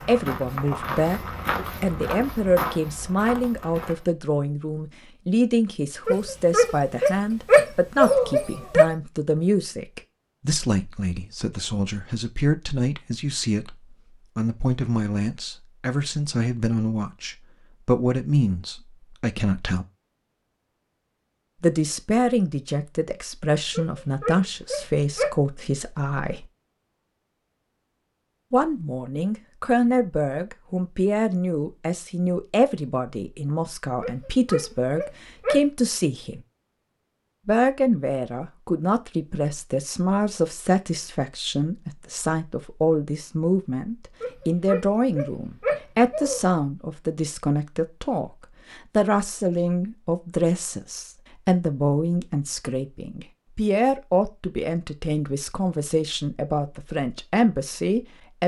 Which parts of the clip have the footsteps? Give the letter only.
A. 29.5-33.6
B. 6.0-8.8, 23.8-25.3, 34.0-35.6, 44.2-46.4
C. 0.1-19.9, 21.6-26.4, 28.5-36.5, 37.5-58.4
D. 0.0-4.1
D.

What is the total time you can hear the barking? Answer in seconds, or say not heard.
8 s.